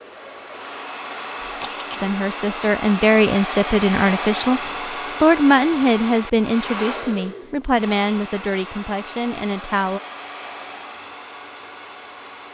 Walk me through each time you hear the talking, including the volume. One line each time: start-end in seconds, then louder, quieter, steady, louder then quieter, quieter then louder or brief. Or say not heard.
2.0-4.6 brief
5.2-10.0 quieter.